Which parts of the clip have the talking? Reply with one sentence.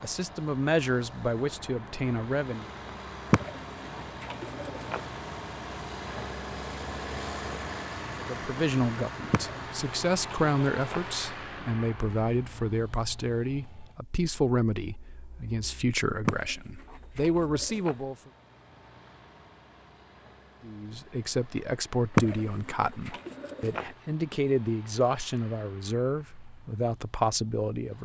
You can hear the talking from 0.0 to 2.7 s, from 8.2 to 18.3 s and from 20.6 to 27.9 s.